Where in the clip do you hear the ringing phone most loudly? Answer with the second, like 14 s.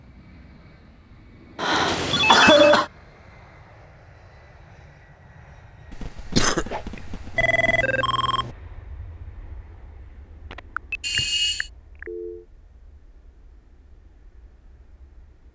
2 s.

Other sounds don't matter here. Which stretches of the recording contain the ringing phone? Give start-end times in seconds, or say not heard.
1.6-2.8, 7.3-8.6, 10.5-12.4.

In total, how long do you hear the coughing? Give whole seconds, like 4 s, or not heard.
4 s.